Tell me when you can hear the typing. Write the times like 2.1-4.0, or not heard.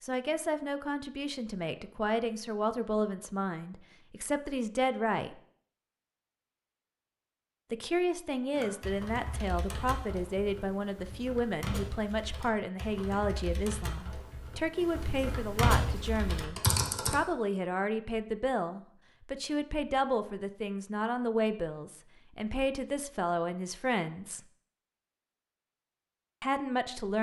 8.6-17.1.